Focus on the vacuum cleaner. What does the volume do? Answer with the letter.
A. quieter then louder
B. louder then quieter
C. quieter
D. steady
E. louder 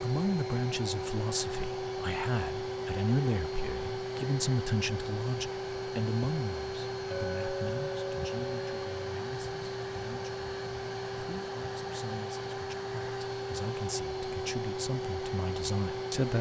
D.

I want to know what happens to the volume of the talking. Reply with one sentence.
The volume of the talking goes down, then up.